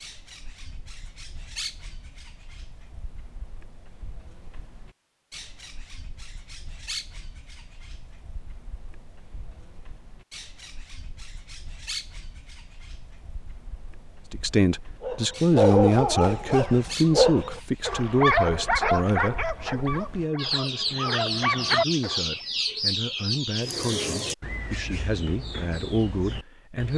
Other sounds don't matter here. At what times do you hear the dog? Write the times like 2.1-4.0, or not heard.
15.0-22.2.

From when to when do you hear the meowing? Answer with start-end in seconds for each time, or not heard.
not heard.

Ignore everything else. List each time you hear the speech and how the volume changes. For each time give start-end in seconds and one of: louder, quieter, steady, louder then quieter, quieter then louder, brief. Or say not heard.
14.3-26.9 quieter.